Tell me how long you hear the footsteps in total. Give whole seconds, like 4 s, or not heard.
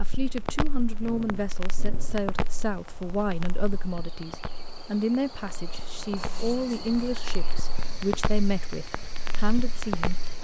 not heard.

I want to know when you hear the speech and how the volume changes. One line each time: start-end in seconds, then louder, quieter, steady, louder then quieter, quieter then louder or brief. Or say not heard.
0.0-10.3 steady.